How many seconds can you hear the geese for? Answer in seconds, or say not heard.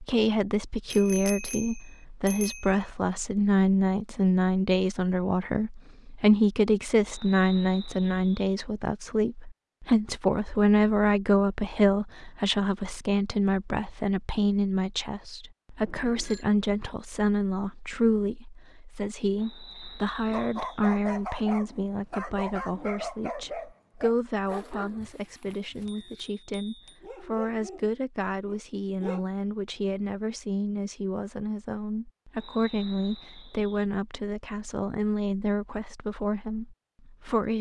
not heard.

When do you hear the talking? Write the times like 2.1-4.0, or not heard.
0.0-37.5.